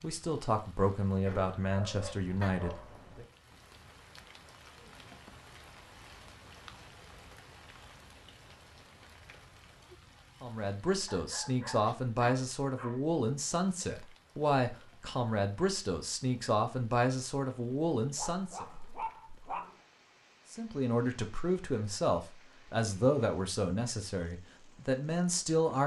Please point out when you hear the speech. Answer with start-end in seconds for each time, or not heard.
0.0-3.2, 10.4-18.6, 20.5-25.8.